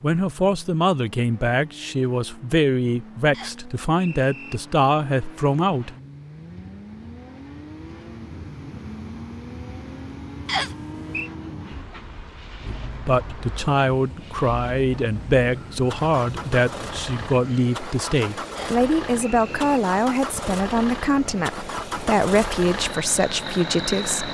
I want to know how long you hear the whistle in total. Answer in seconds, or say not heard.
3 s.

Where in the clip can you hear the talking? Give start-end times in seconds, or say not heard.
0.0-6.0, 12.7-24.2.